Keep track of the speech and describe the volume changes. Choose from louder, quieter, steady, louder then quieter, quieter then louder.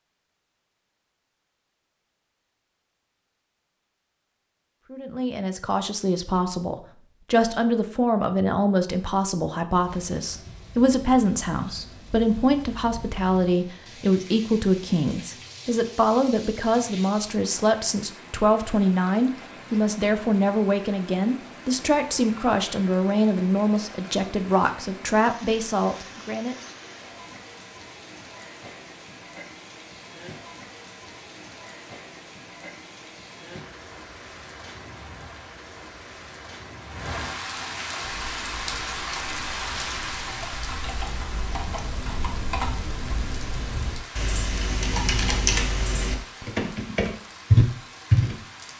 steady.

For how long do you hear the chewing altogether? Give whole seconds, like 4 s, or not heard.
not heard.